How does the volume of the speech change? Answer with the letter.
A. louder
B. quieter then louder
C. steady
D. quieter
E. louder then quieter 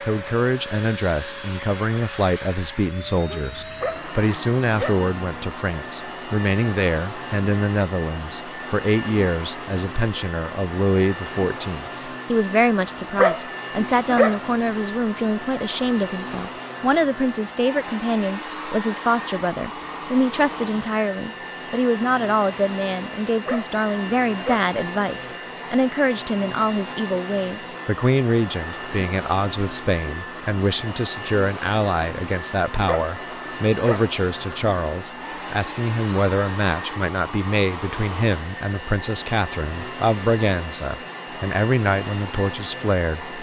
C.